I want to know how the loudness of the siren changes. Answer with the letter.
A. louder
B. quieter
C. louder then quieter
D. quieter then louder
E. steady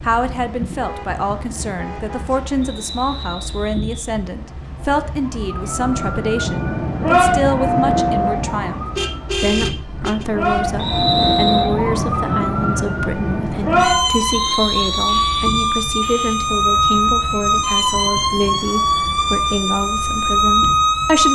E.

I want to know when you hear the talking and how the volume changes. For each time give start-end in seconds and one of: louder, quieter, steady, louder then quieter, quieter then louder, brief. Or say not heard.
0.0-21.3 steady.